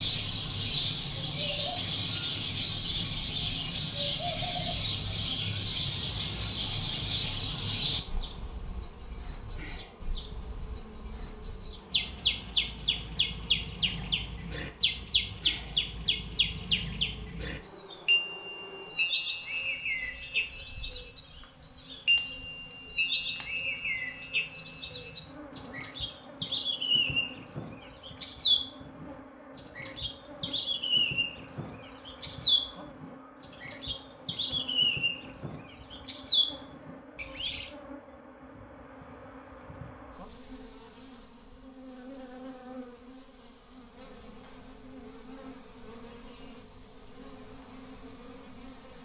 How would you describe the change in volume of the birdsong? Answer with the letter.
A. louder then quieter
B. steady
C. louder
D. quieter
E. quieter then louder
B.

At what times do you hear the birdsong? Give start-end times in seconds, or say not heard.
0.0-37.7.